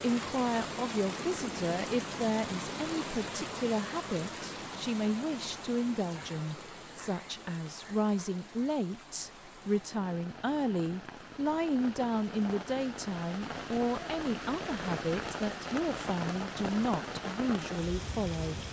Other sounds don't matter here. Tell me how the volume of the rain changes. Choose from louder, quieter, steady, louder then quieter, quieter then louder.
quieter then louder.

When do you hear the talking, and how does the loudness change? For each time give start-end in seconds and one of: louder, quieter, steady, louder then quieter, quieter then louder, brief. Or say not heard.
0.0-18.6 steady.